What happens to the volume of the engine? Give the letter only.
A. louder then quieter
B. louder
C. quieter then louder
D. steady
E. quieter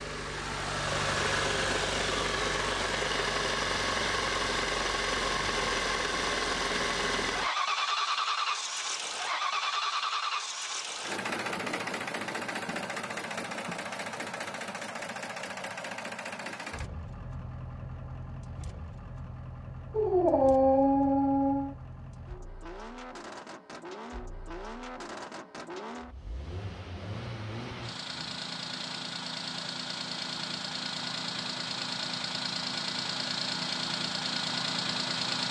C.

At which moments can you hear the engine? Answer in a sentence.
You can hear the engine from 0.0 to 35.4 s.